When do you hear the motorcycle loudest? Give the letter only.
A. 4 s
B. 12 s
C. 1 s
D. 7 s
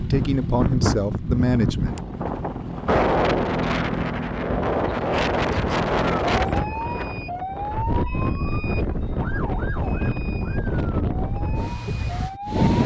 A.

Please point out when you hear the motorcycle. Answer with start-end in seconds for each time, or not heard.
0.0-6.2.